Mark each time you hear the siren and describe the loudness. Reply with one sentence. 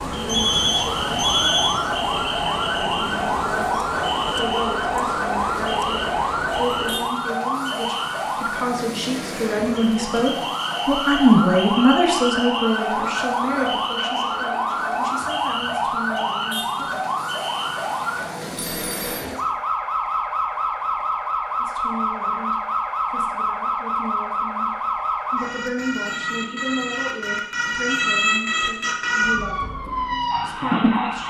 You can hear the siren from 0.0 to 31.2 s, at a steady volume.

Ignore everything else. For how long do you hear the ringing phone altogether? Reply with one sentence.
You can hear the ringing phone for 2 seconds altogether.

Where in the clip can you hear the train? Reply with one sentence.
The train can be heard from 0.0 to 7.2 s.